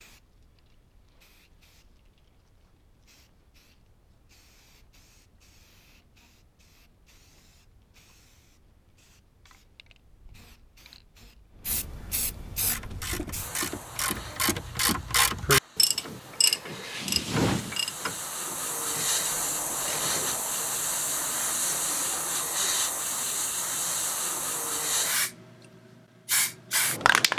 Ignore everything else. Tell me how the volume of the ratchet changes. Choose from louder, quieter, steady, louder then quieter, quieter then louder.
louder then quieter.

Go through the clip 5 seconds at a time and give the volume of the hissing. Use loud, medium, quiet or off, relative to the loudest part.
quiet, quiet, quiet, medium, loud, loud.